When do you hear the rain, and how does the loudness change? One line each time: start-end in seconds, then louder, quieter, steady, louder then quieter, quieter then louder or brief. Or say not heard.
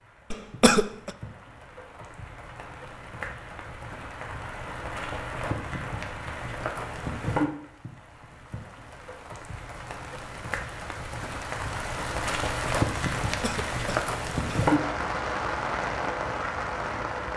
0.0-17.3 louder.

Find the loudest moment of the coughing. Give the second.
1 s.